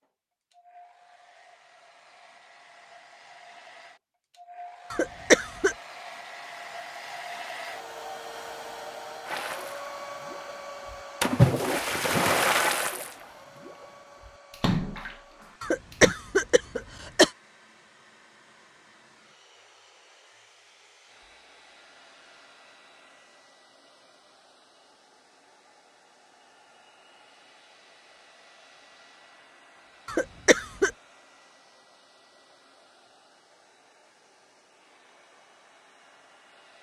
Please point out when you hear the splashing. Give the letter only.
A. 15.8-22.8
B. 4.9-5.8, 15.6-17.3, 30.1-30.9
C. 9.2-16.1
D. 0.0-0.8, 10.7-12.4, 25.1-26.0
C.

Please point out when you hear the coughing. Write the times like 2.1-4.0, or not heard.
4.9-5.8, 15.6-17.3, 30.1-30.9.